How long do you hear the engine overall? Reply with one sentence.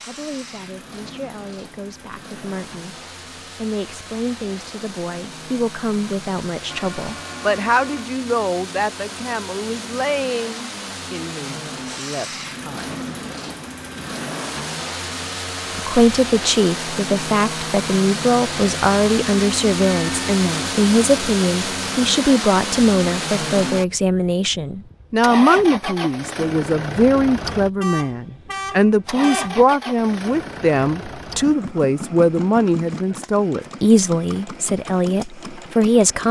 You can hear the engine for 36 seconds altogether.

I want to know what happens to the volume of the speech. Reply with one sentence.
The volume of the speech goes up.